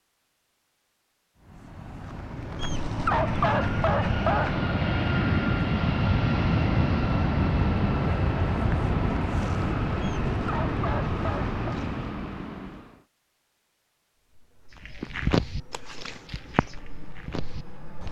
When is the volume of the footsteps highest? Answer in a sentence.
The loudest moment of the footsteps is at 15 seconds.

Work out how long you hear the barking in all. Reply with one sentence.
You can hear the barking for 4 seconds altogether.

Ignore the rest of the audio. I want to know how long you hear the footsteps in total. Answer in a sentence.
You can hear the footsteps for 3 seconds altogether.